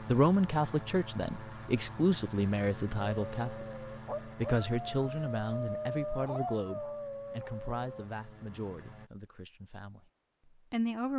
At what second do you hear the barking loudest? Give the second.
6 s.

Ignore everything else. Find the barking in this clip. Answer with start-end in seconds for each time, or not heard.
3.2-8.1.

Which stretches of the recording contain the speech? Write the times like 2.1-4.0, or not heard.
0.0-10.0, 10.7-11.1.